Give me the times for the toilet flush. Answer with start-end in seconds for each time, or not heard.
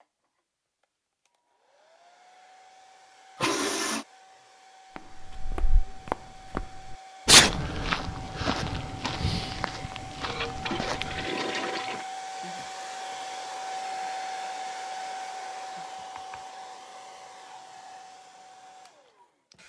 3.4-4.0, 10.2-12.1.